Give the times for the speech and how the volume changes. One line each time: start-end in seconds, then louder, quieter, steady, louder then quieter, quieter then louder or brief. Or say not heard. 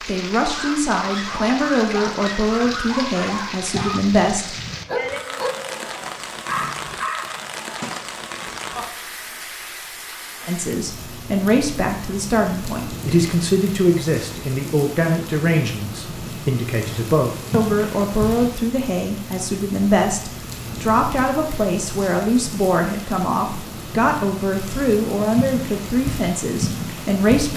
0.1-4.5 steady
10.4-27.5 steady.